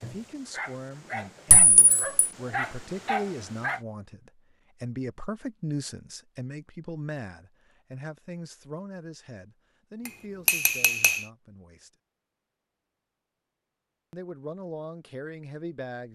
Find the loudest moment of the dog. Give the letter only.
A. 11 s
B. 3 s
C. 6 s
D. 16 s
B.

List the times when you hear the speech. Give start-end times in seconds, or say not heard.
0.0-11.9, 14.1-16.1.